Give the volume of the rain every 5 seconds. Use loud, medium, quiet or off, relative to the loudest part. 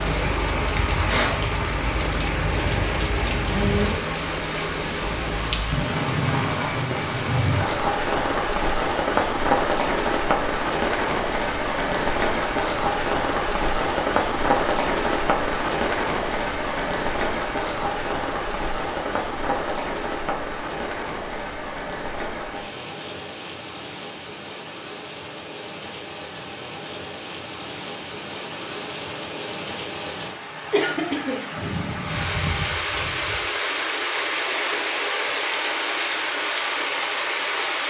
loud, loud, loud, loud, medium, medium, loud, loud.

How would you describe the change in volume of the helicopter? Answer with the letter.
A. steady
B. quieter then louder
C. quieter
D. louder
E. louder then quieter
A.